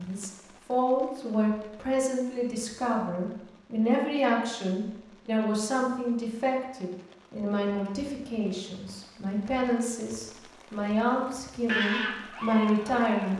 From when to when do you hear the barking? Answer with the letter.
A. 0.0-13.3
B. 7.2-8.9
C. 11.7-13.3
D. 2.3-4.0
C.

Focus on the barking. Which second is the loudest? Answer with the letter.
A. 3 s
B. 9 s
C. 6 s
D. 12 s
D.